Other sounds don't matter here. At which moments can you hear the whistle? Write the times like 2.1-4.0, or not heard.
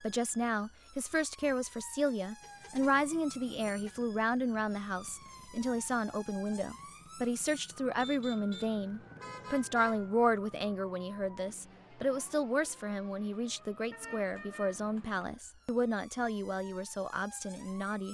not heard.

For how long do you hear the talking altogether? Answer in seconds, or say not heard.
18 s.